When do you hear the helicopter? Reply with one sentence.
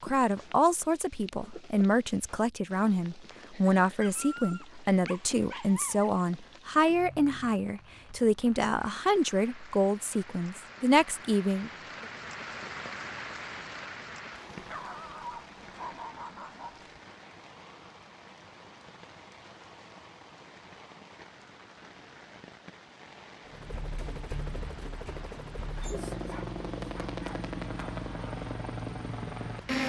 You can hear the helicopter from 23.4 to 29.8 s.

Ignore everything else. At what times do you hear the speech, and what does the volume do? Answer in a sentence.
The speech can be heard from 0.0 to 12.1 s, at a steady volume.